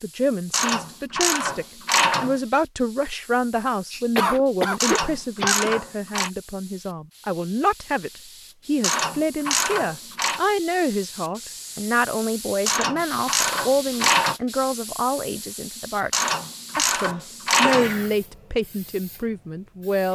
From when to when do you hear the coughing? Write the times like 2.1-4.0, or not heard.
3.9-5.8, 17.6-18.1.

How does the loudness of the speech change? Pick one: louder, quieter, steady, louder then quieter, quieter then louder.
steady.